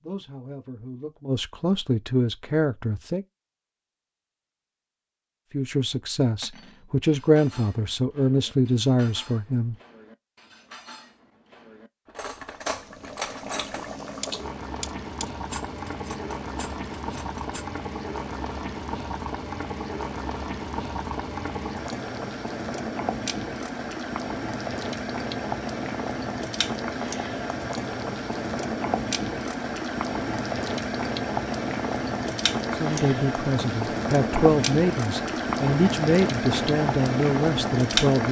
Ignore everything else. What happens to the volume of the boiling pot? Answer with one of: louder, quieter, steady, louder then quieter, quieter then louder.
louder.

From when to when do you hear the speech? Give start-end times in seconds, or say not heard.
0.0-3.2, 5.5-9.8, 32.7-38.2.